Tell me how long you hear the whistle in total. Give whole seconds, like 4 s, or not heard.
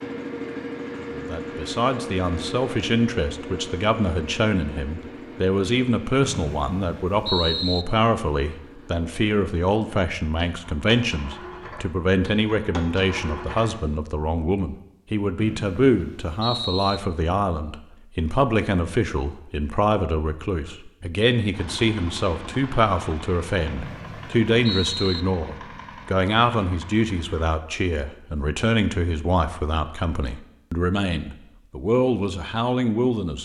5 s.